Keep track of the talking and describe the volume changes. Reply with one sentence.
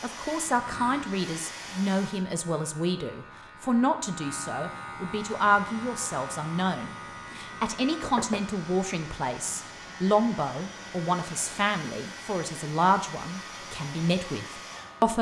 The volume of the talking stays about the same.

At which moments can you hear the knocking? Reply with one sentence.
The knocking can be heard from 8.0 to 8.4 s.